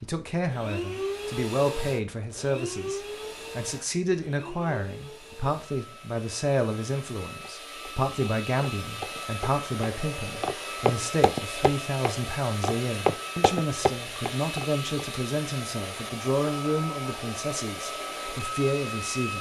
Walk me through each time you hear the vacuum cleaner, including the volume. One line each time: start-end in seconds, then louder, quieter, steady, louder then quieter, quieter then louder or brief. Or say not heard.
0.0-19.3 quieter then louder.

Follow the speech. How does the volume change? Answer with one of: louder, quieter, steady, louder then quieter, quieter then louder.
steady.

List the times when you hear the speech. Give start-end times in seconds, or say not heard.
0.0-19.3.